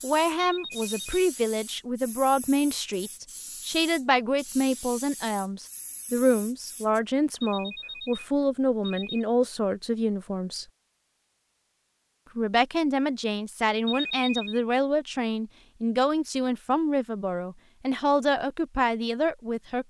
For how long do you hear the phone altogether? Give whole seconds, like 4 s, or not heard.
4 s.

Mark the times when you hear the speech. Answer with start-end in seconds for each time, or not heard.
0.0-10.7, 12.3-19.8.